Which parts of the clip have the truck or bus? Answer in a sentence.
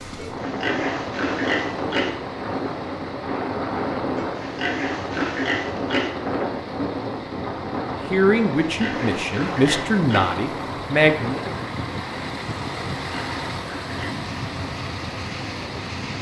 The truck or bus can be heard from 0.0 to 16.1 s.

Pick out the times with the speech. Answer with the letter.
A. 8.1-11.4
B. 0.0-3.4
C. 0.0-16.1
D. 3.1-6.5
A.